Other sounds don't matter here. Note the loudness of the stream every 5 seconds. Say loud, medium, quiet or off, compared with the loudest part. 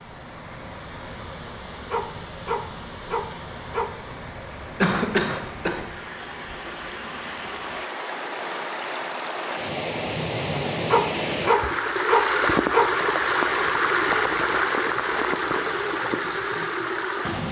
quiet, medium, loud, loud.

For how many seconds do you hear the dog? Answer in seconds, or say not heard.
4 s.